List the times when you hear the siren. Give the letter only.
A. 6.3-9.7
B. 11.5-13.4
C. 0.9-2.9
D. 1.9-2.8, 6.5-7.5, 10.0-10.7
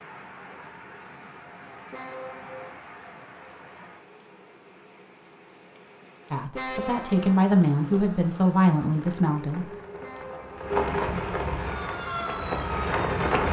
B.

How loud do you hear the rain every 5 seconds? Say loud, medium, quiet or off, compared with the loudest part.
quiet, quiet, loud.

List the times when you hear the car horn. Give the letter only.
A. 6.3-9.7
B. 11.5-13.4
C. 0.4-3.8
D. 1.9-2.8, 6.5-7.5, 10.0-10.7
D.